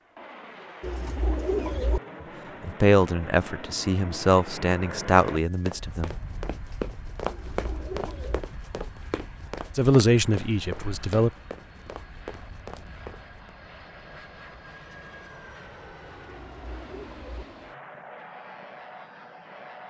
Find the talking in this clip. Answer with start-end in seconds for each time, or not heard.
2.6-6.1, 9.8-11.3.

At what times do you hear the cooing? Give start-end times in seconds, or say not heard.
0.8-2.0, 7.2-8.4, 16.4-17.4.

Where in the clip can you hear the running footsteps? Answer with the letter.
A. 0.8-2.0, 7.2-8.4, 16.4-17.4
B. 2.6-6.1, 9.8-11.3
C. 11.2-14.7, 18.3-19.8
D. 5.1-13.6
D.